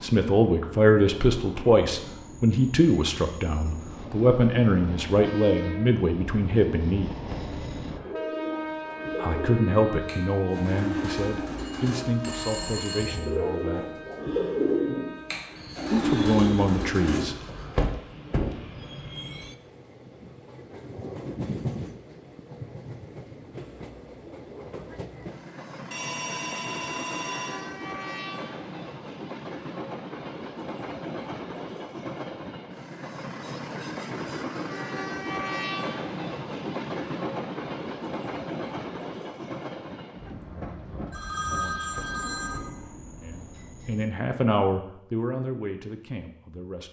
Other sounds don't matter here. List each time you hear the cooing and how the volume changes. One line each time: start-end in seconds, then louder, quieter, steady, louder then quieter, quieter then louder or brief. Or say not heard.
8.0-17.9 louder.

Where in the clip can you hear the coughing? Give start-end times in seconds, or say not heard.
not heard.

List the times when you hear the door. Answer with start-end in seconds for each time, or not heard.
7.3-8.2, 17.8-18.6, 42.0-42.8.